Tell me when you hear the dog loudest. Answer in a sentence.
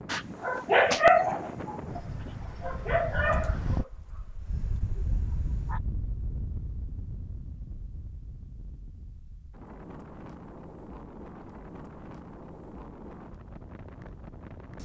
The volume of the dog peaks at 1 second.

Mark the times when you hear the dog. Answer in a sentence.
You can hear the dog from 0.1 to 5.8 s.